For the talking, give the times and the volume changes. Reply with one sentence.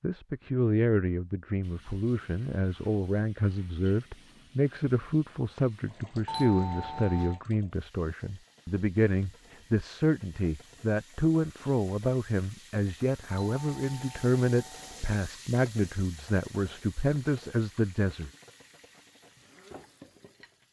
The talking can be heard from 0.0 to 18.3 s, at a steady volume.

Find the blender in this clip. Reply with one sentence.
You can't hear the blender here.